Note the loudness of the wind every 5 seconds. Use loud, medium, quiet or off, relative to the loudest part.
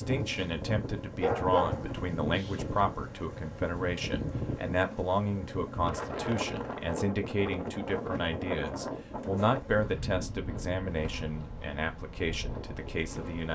loud, loud, medium.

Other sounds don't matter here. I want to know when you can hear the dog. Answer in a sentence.
The dog can be heard from 1.2 to 2.8 s.